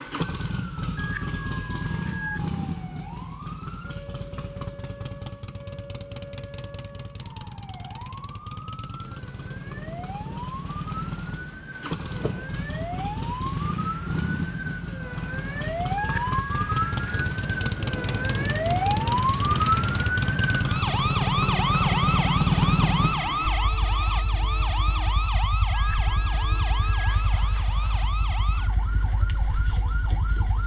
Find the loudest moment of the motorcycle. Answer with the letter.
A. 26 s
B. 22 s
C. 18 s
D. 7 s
B.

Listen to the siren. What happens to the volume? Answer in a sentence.
The volume of the siren goes up, then down.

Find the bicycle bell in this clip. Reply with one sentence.
The bicycle bell can be heard from 0.9 to 2.5 s, from 15.9 to 17.2 s and from 25.7 to 27.6 s.